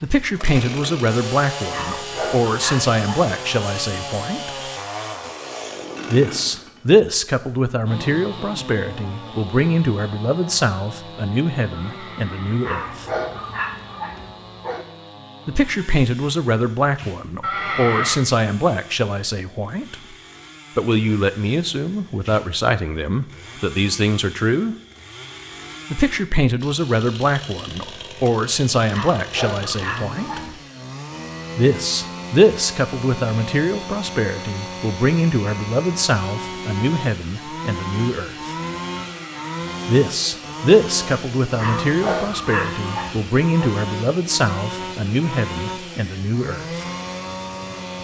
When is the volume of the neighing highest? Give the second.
18 s.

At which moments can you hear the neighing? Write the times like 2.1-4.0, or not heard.
11.7-12.8, 17.4-18.2, 39.0-39.6.